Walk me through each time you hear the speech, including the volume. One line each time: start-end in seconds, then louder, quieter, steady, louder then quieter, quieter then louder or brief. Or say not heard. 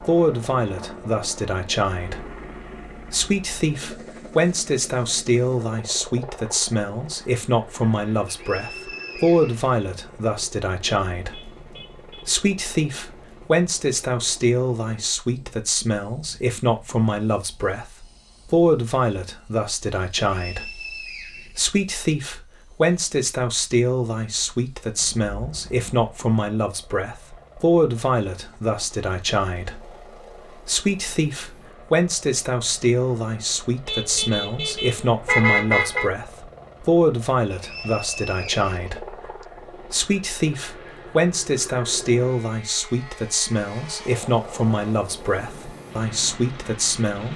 0.0-47.3 steady.